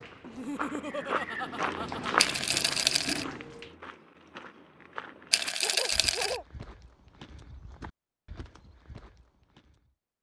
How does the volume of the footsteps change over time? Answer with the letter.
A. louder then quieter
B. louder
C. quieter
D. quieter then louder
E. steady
C.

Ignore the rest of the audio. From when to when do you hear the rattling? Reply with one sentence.
The rattling can be heard from 2.1 to 3.2 s and from 5.3 to 6.4 s.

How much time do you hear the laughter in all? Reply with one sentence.
You can hear the laughter for 3 seconds altogether.